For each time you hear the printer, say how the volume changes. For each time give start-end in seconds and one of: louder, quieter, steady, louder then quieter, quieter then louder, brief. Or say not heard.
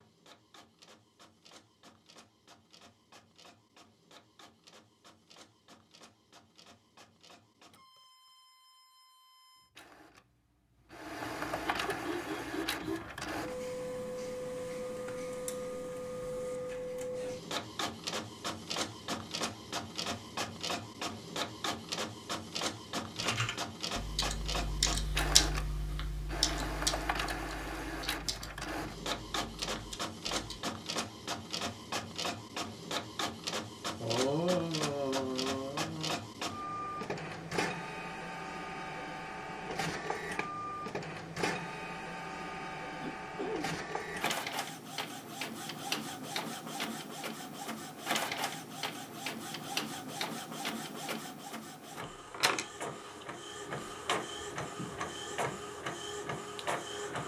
0.0-57.2 louder.